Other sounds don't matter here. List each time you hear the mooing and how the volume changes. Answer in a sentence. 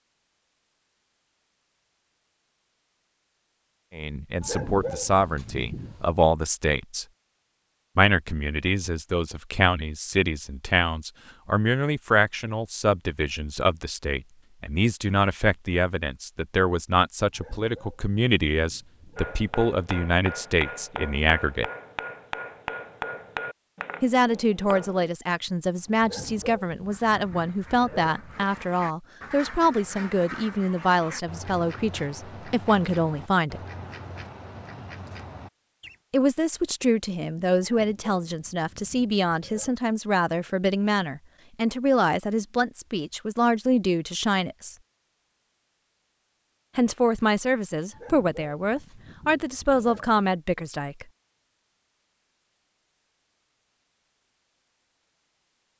The mooing can't be heard in this clip.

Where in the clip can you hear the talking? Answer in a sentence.
The talking can be heard from 3.9 to 7.0 s, from 8.0 to 21.7 s, from 24.0 to 33.6 s, from 36.1 to 44.8 s and from 46.8 to 51.0 s.